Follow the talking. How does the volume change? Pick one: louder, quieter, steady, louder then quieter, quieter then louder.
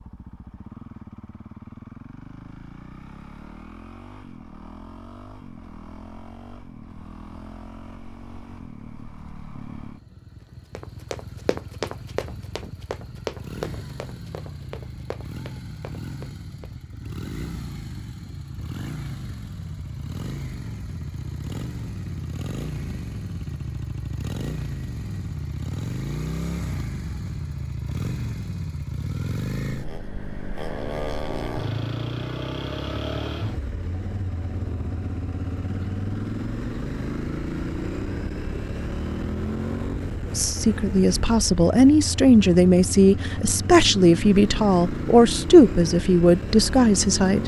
steady.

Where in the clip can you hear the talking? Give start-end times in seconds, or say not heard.
40.4-47.4.